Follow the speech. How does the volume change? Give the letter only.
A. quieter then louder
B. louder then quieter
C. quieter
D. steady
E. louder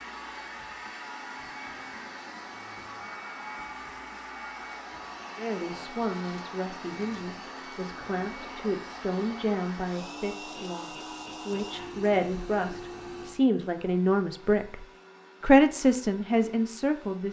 E.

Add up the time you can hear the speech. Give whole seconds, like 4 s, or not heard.
12 s.